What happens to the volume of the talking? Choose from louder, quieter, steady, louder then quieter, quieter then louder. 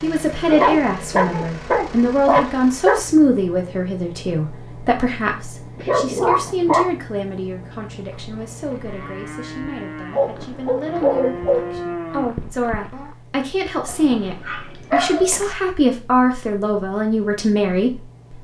quieter then louder.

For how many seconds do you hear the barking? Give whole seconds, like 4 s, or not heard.
7 s.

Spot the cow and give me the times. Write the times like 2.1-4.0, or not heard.
8.0-13.2.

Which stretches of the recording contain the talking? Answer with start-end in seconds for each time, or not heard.
0.0-18.4.